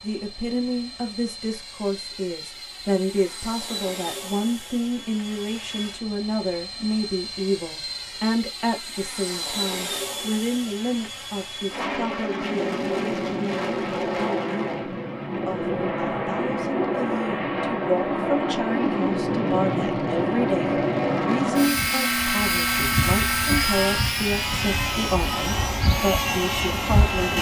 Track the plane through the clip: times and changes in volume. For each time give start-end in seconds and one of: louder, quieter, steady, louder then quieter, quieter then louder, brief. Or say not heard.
0.0-27.3 louder.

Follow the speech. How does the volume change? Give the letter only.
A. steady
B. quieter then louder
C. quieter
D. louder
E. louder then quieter
A.